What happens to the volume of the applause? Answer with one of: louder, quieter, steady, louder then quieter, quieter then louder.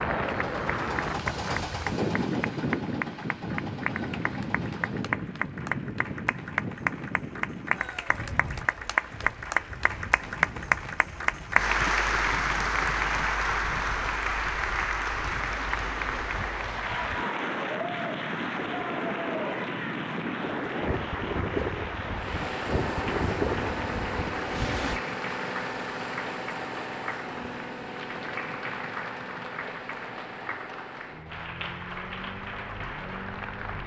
louder then quieter.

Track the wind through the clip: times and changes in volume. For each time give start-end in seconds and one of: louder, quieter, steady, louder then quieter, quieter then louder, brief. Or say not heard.
0.0-25.0 quieter then louder.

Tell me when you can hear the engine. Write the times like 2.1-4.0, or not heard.
0.0-5.2, 22.1-33.8.